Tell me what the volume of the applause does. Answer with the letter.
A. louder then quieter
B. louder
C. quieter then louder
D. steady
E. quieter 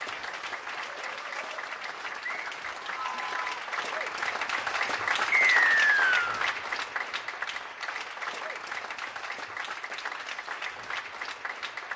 A.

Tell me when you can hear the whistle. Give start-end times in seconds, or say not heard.
5.3-6.3.